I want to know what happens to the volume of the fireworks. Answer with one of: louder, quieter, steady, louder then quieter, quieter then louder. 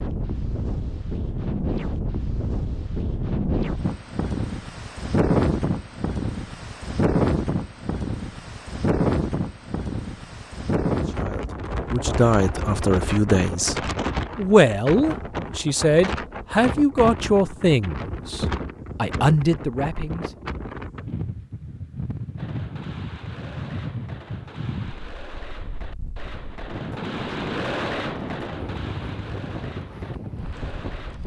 louder then quieter.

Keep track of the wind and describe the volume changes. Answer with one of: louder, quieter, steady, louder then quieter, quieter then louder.
quieter.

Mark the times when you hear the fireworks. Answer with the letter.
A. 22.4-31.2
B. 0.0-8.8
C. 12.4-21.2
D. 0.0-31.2
A.